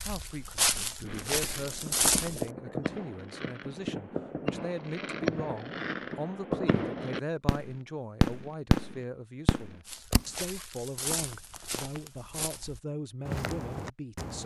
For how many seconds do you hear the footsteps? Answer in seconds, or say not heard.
7 s.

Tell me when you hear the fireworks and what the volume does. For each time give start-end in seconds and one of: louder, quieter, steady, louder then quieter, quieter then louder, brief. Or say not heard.
1.0-10.2 louder.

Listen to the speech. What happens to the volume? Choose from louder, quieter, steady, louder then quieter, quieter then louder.
steady.